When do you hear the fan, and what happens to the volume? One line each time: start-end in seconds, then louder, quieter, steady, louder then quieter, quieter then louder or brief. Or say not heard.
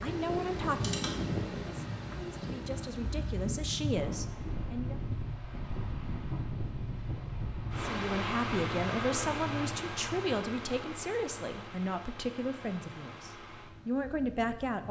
0.0-14.8 quieter.